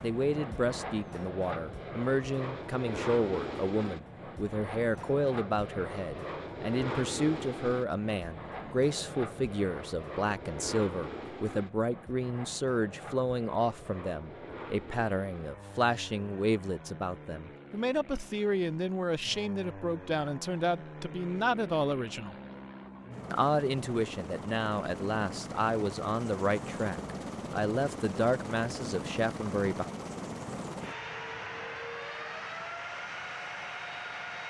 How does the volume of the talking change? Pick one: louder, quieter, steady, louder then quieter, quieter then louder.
steady.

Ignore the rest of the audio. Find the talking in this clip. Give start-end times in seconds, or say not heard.
0.0-22.4, 23.3-29.9.